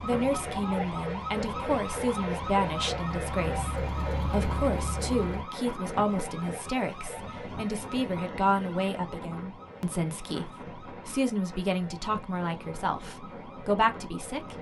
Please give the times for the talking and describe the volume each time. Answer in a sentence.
You can hear the talking from 0.0 to 14.5 s, at a steady volume.